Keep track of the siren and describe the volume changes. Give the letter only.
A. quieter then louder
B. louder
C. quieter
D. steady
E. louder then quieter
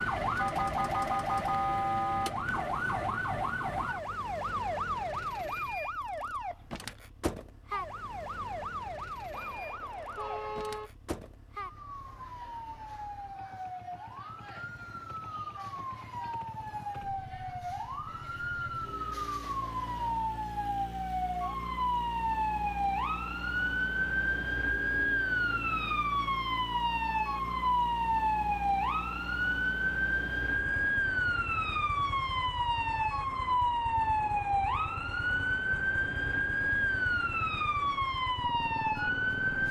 A.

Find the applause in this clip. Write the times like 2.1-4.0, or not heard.
not heard.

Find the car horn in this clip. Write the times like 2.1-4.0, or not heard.
9.3-10.9.